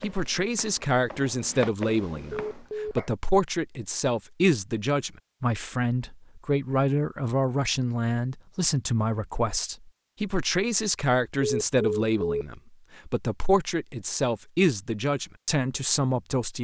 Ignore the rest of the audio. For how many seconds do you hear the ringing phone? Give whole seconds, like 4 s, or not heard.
2 s.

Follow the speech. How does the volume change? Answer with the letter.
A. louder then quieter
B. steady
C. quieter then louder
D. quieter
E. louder
B.